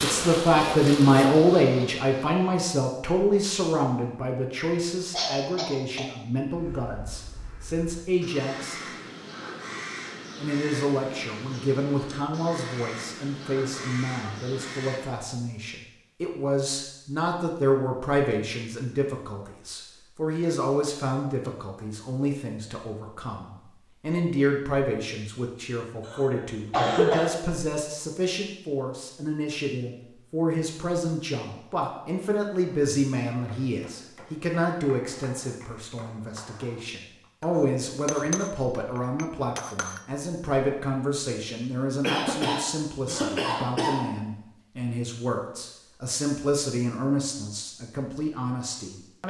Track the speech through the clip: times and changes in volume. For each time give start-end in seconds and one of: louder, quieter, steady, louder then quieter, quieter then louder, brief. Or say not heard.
0.0-8.8 quieter
10.4-49.2 steady.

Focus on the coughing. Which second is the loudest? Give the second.
27 s.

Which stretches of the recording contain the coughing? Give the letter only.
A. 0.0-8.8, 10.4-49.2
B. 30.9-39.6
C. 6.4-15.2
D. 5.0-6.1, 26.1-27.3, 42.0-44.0
D.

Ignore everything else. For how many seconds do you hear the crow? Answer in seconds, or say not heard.
9 s.